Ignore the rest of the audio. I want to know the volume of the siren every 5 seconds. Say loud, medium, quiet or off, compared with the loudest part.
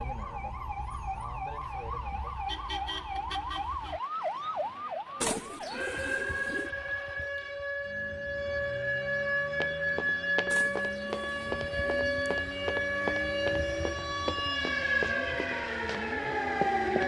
medium, loud, loud, loud.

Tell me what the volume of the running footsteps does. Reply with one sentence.
The volume of the running footsteps goes down.